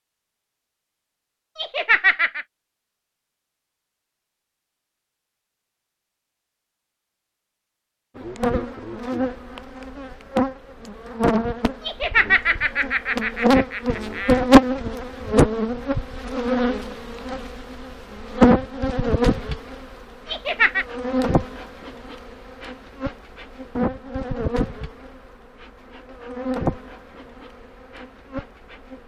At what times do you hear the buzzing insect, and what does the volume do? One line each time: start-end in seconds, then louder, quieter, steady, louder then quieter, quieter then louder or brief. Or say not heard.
8.2-29.0 louder then quieter.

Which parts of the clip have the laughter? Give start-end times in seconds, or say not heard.
1.6-2.5, 11.8-14.4, 20.2-20.9.